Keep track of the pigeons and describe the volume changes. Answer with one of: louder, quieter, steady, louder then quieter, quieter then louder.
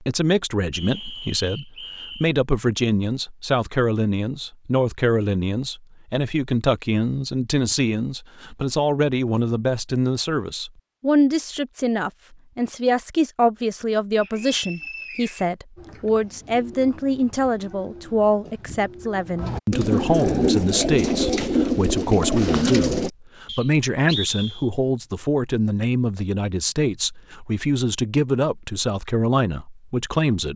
louder.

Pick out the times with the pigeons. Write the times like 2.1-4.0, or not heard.
15.8-23.1.